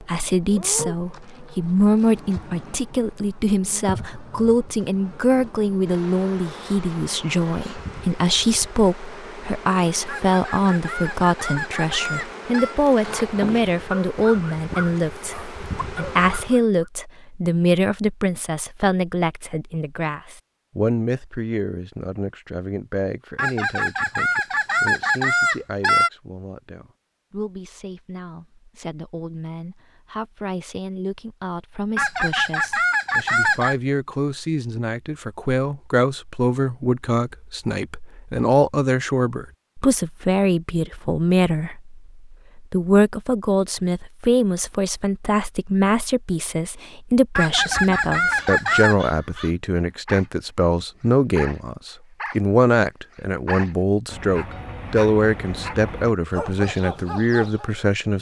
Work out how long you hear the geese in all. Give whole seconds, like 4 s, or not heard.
9 s.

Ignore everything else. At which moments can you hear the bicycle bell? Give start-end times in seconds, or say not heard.
not heard.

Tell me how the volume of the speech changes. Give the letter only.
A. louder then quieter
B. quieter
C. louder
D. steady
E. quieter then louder
E.